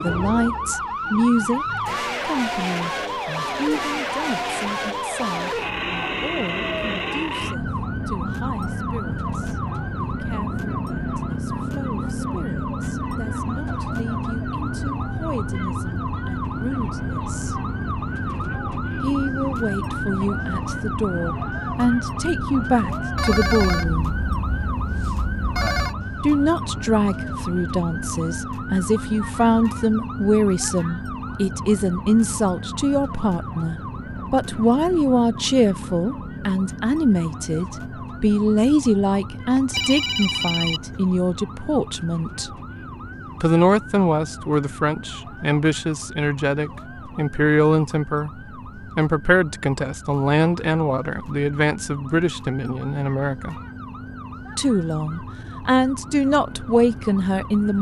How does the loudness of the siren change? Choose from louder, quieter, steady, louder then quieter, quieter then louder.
quieter.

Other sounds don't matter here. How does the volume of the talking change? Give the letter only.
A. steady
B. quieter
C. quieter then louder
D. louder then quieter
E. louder
E.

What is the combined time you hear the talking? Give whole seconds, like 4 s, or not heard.
52 s.